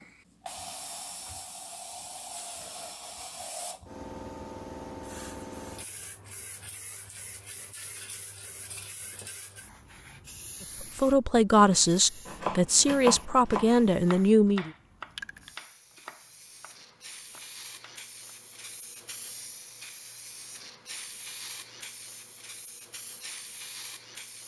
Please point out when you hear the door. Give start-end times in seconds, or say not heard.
not heard.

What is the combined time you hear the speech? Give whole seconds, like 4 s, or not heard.
4 s.